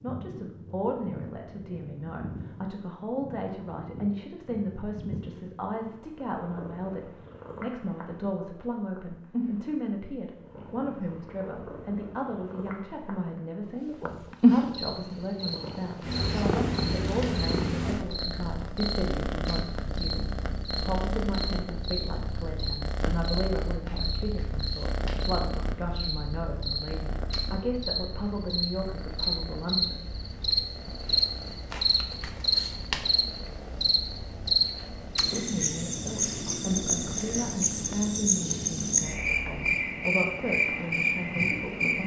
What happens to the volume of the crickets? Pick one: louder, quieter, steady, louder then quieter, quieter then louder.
louder.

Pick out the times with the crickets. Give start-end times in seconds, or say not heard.
14.7-42.0.